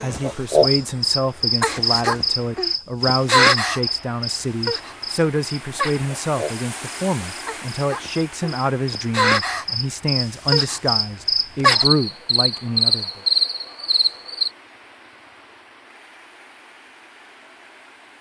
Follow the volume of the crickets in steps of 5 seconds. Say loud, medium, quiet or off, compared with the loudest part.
loud, medium, loud, off.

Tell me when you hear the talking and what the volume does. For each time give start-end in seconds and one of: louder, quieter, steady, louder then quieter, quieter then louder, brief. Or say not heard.
0.0-13.2 steady.